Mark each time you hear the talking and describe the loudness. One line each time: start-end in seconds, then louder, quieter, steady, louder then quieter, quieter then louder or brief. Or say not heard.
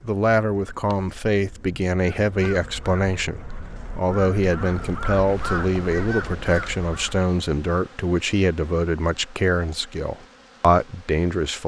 0.0-11.6 steady.